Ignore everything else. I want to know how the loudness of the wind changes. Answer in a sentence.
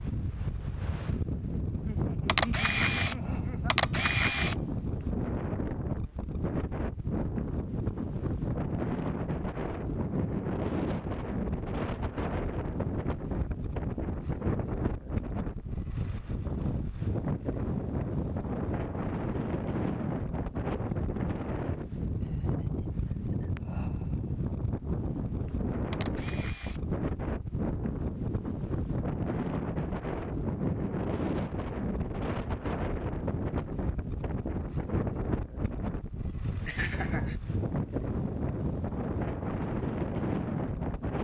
The volume of the wind stays about the same.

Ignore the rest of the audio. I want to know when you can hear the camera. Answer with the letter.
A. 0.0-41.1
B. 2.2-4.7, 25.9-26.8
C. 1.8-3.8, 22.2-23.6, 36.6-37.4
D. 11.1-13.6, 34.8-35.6
B.